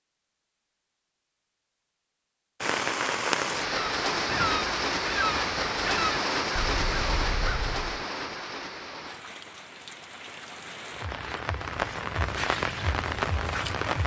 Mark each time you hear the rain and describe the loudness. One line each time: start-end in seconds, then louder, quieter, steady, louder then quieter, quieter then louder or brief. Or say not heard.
2.6-14.0 quieter then louder.